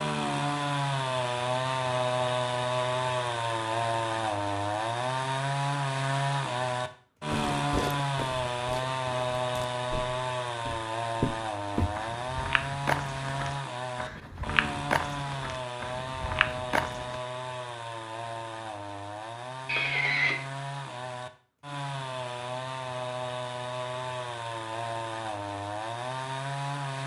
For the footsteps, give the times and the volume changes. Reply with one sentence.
The footsteps can be heard from 7.5 to 17.2 s, getting louder.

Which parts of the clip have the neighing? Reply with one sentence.
You can hear the neighing from 19.6 to 20.4 s.